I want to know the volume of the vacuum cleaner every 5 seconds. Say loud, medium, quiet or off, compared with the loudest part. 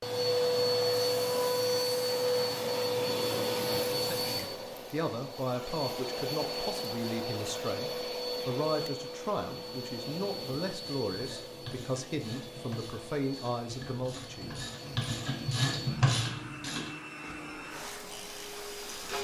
loud, medium, quiet, quiet.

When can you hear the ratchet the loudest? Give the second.
16 s.